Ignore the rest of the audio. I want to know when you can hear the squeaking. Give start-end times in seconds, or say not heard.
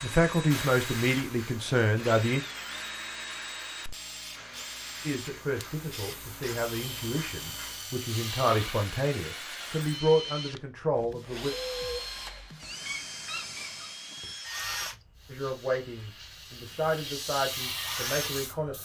12.8-13.9.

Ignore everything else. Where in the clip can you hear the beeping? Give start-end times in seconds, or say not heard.
11.6-12.1.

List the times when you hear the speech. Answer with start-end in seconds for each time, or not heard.
0.0-2.4, 5.0-11.6, 15.2-18.8.